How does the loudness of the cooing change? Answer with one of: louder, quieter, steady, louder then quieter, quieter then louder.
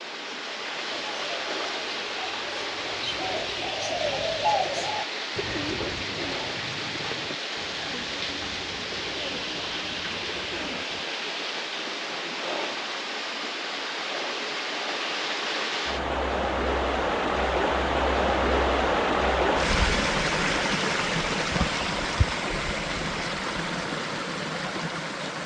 louder then quieter.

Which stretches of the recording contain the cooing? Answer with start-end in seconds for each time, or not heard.
0.9-11.1.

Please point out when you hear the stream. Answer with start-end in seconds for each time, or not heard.
0.0-25.4.